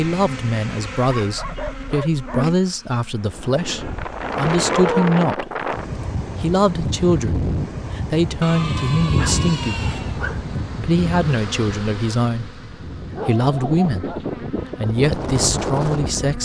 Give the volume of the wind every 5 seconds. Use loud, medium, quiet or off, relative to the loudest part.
loud, loud, medium, loud.